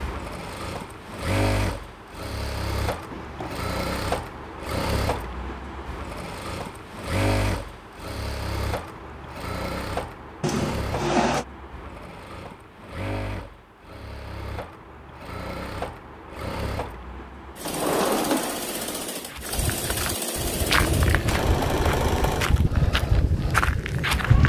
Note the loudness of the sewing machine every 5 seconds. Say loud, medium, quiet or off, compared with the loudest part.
loud, loud, medium, medium, loud.